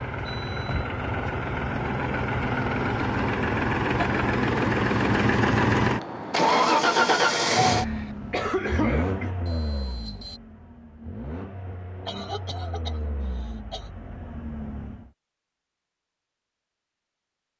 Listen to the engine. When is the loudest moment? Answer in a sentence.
The volume of the engine peaks at 7 seconds.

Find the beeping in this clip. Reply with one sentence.
You can hear the beeping from 0.1 to 0.8 s and from 9.4 to 10.4 s.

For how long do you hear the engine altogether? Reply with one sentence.
The engine can be heard for 15 seconds in total.